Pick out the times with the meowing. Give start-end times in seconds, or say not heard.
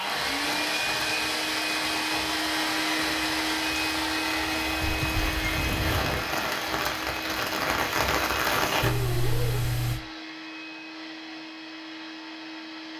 0.7-1.4, 4.8-6.2, 8.8-10.0.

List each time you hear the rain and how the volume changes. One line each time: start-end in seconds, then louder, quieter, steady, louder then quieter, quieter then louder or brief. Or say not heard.
0.0-8.9 louder.